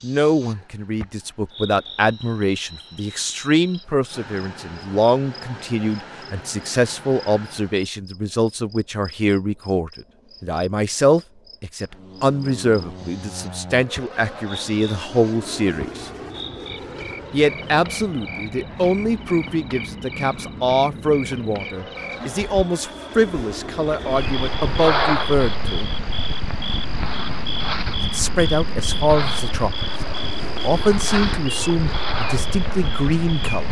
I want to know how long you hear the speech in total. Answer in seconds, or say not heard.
30 s.